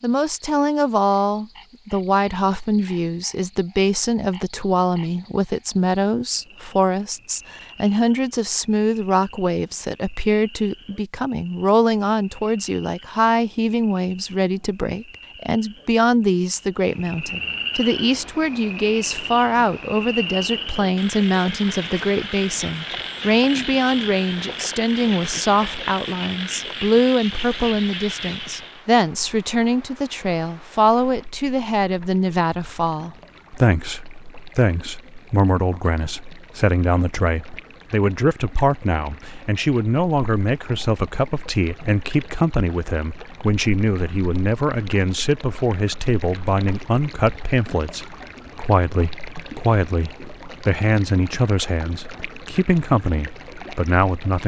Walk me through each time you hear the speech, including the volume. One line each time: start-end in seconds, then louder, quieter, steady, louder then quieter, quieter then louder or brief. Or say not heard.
0.0-54.4 steady.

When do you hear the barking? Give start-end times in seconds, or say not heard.
not heard.